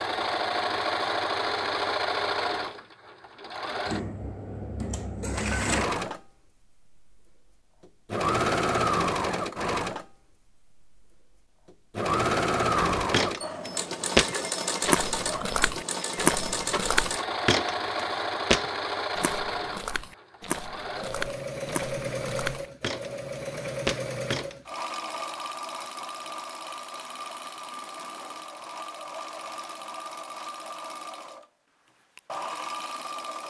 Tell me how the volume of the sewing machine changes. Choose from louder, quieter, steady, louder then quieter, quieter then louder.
quieter.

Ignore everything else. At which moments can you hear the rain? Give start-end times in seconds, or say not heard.
not heard.